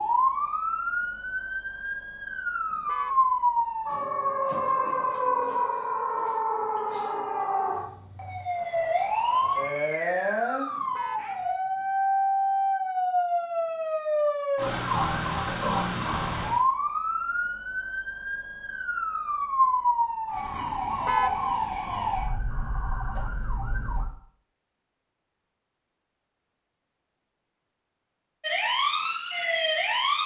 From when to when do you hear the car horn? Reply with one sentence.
You can hear the car horn from 2.7 to 3.2 s, from 10.8 to 11.8 s and from 20.9 to 21.4 s.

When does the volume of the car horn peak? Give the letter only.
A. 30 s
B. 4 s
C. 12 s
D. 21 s
D.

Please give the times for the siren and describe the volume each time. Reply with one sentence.
The siren can be heard from 0.0 to 24.1 s, at a steady volume; and briefly from 28.4 to 30.2 s.